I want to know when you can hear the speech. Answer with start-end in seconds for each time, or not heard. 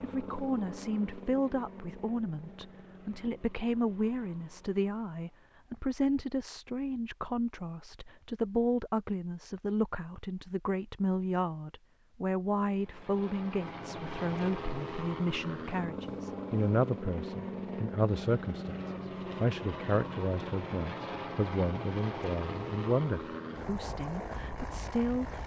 0.0-25.4.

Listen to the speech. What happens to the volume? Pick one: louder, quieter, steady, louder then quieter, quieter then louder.
steady.